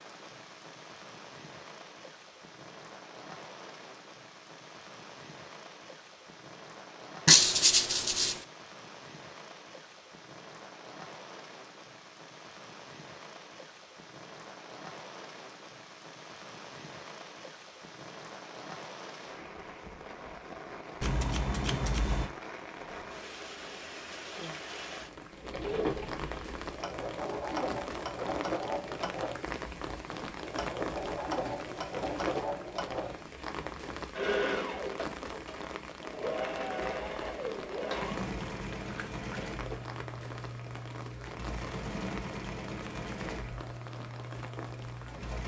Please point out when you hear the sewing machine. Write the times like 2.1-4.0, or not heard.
25.3-45.4.